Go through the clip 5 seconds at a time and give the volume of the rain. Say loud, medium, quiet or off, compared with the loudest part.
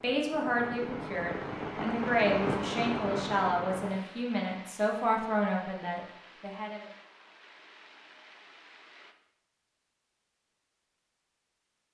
loud, quiet, off.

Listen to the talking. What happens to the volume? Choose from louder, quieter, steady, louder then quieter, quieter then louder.
steady.